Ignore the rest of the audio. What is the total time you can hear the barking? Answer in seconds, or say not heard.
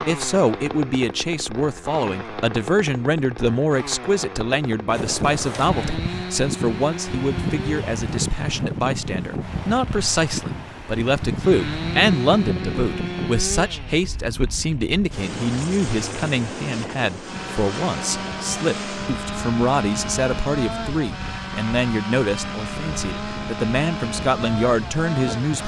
not heard.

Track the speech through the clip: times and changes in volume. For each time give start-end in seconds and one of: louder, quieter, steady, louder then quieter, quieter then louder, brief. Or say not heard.
0.1-25.6 steady.